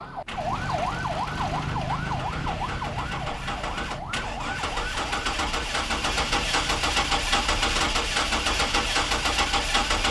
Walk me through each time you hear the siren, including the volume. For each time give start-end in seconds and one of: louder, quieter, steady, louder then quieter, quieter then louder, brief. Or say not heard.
0.0-9.9 quieter.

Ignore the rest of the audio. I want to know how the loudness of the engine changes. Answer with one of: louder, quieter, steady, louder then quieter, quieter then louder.
louder.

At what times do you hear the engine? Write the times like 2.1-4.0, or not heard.
0.1-10.0.